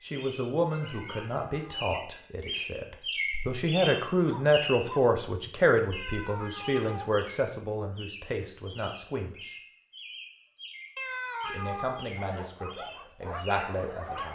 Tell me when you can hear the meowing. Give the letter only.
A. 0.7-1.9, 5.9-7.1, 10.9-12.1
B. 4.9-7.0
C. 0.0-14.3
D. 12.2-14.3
A.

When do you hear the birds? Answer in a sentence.
The birds can be heard from 0.0 to 14.3 s.